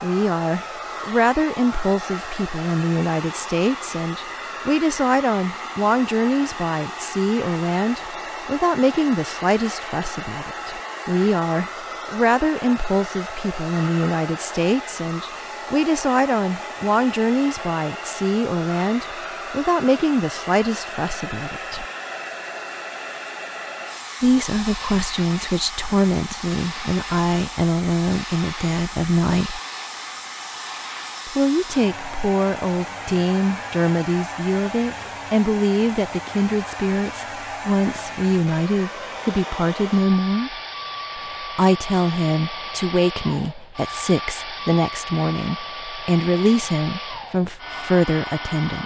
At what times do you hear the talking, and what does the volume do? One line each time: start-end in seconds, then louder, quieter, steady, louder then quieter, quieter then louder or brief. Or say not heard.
0.0-21.9 steady
24.2-29.6 steady
31.2-40.5 steady
41.1-48.8 steady.